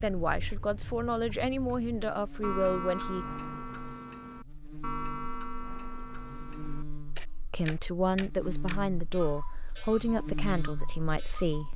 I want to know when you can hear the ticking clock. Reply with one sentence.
The ticking clock can be heard from 0.0 to 11.7 s.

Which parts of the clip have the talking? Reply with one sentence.
You can hear the talking from 0.0 to 3.2 s and from 7.5 to 11.7 s.